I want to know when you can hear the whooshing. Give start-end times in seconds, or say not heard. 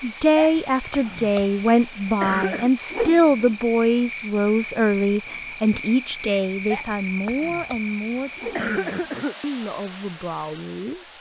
2.9-3.5, 8.3-9.1.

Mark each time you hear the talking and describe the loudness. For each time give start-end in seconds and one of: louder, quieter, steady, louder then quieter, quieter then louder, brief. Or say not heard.
0.0-11.1 quieter.